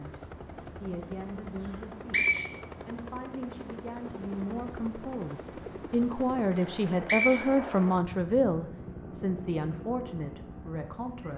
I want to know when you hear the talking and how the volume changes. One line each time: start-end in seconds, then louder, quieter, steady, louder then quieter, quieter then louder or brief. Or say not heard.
0.0-11.3 louder then quieter.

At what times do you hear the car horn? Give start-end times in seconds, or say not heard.
not heard.